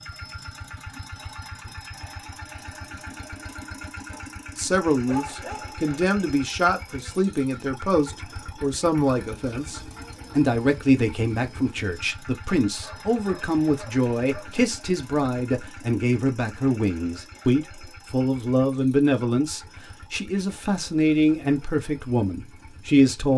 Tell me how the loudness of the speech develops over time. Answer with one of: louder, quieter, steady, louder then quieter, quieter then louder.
steady.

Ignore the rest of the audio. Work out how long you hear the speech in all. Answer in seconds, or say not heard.
19 s.